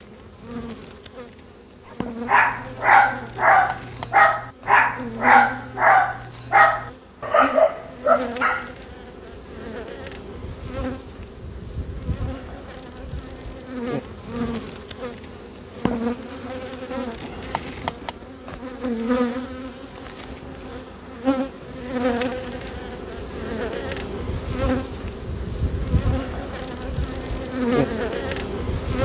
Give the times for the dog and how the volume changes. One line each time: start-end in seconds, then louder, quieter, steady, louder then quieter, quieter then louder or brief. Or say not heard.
2.2-8.7 steady.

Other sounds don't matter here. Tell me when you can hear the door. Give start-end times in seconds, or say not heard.
not heard.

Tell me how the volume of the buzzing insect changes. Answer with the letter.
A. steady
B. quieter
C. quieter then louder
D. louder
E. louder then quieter
D.